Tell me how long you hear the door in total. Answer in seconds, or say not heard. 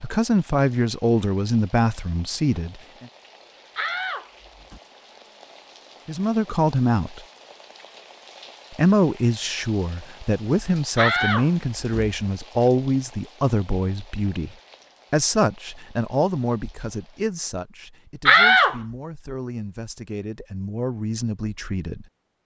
3 s.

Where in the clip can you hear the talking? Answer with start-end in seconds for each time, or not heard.
0.0-3.0, 6.0-7.2, 8.7-22.1.